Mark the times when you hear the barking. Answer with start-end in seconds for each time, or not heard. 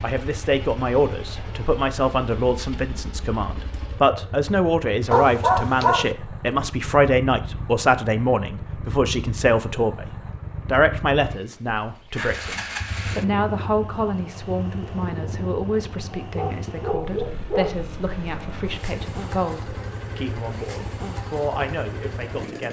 5.1-6.1, 16.1-17.8.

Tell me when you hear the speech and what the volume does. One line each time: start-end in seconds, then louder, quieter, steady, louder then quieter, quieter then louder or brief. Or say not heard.
0.0-22.6 quieter.